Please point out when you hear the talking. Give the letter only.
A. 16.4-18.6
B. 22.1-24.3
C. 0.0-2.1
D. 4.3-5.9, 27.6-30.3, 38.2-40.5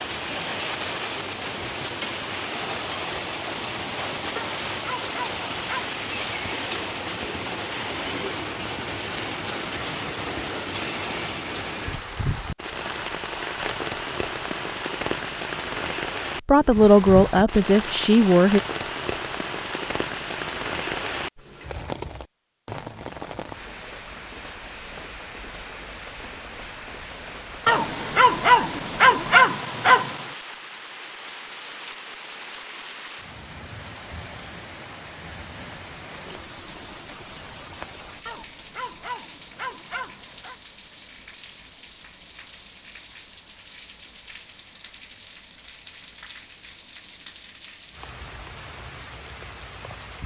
A.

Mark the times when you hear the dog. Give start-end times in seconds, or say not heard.
4.3-5.9, 27.6-30.3, 38.2-40.5.